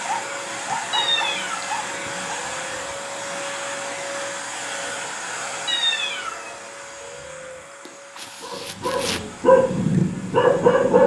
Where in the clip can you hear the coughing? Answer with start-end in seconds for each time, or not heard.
7.8-9.3.